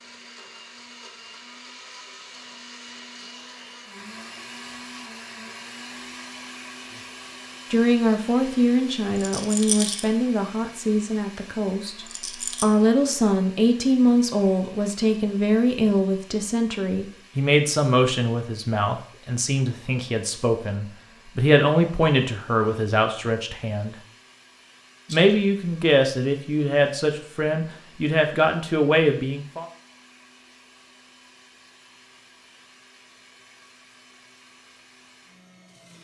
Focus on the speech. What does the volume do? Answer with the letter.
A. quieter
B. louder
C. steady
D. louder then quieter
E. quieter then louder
C.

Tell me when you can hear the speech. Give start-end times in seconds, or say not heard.
7.7-23.9, 25.1-29.6.